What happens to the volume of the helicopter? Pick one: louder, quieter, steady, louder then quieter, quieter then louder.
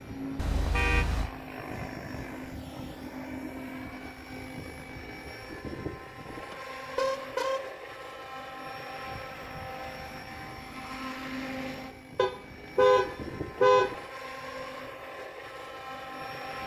steady.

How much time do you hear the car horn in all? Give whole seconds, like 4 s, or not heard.
4 s.